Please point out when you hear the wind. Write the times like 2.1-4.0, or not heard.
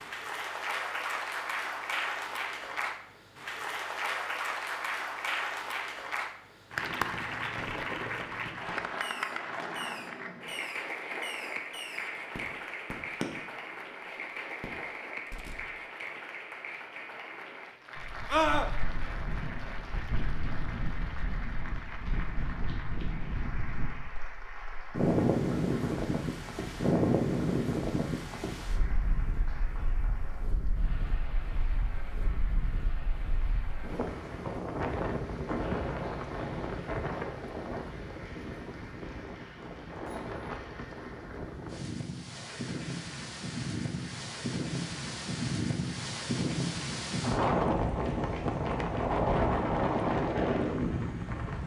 17.9-51.6.